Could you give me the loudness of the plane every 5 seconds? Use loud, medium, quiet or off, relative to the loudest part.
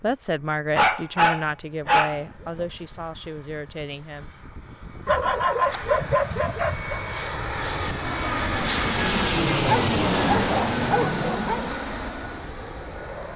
quiet, loud, loud.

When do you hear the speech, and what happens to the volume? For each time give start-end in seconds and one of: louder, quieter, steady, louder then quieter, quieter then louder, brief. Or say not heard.
0.0-4.3 quieter.